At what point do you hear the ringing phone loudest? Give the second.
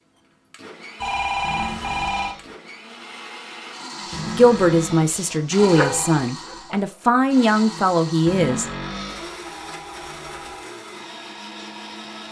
1 s.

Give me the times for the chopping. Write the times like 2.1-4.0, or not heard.
not heard.